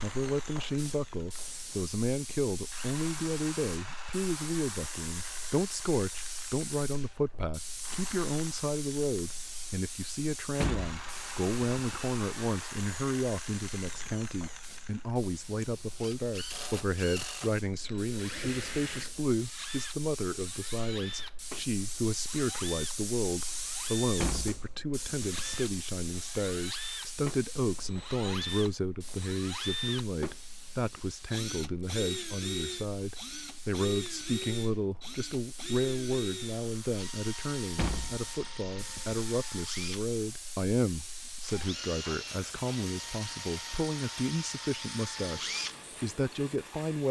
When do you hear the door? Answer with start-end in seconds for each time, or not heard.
10.6-12.1, 24.2-25.6, 37.8-39.2.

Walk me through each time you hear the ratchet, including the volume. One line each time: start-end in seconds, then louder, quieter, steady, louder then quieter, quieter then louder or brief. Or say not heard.
not heard.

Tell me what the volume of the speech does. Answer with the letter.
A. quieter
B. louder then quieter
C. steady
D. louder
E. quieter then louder
C.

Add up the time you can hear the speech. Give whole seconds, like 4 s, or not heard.
47 s.